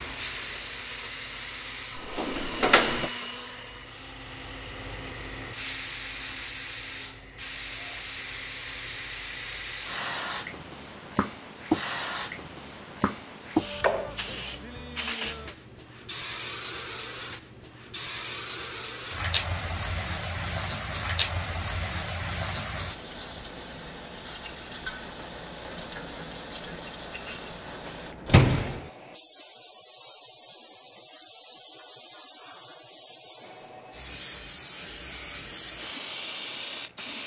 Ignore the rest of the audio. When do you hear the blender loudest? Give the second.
3 s.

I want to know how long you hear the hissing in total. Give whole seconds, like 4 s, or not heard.
37 s.